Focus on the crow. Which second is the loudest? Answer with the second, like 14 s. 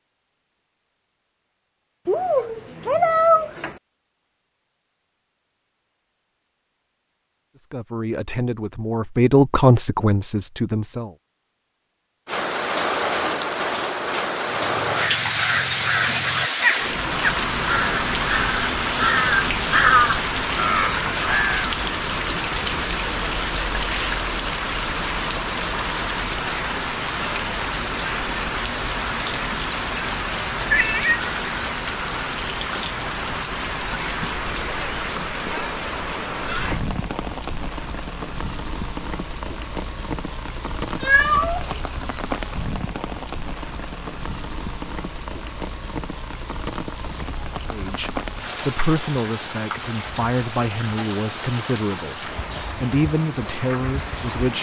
20 s.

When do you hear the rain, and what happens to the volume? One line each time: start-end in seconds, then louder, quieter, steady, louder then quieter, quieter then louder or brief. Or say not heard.
12.2-54.5 quieter.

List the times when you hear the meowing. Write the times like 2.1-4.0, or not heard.
2.0-3.8, 30.6-31.3, 40.9-41.8.